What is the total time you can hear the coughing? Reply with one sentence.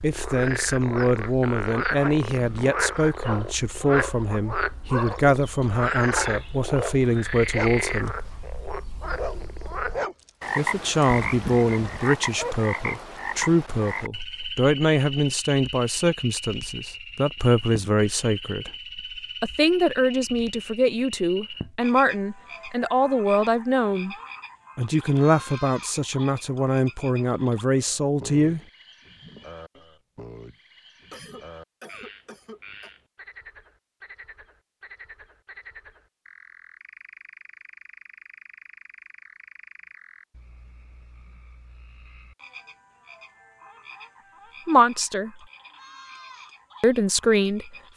You can hear the coughing for 2 seconds altogether.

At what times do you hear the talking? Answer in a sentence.
You can hear the talking from 0.0 to 8.2 s, from 10.6 to 18.8 s, from 19.4 to 24.1 s, from 24.8 to 28.6 s, from 44.6 to 45.3 s and from 46.8 to 47.7 s.